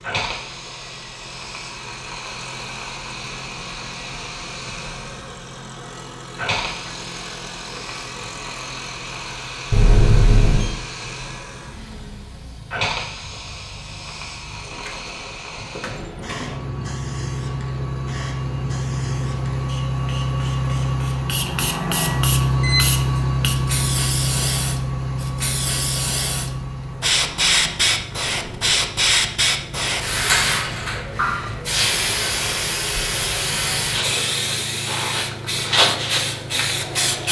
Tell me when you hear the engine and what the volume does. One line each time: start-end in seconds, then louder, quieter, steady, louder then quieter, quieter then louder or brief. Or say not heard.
0.0-37.2 louder then quieter.